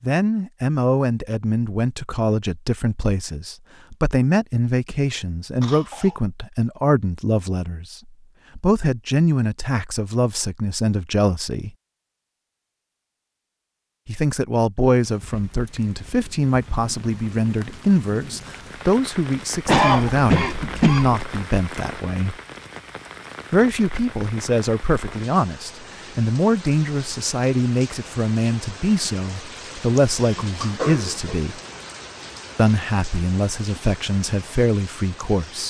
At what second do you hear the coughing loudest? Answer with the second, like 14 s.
20 s.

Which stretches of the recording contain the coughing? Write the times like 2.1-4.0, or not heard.
5.6-6.2, 19.6-21.1, 30.6-31.4.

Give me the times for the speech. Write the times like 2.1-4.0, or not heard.
0.0-11.7, 14.1-22.4, 23.5-31.6, 32.5-35.6.